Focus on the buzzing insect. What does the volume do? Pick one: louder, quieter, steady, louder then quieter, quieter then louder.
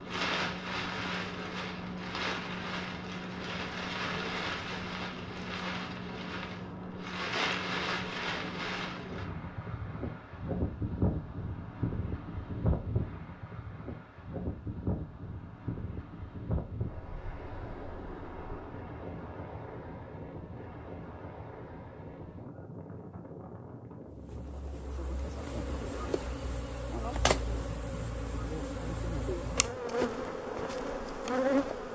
louder.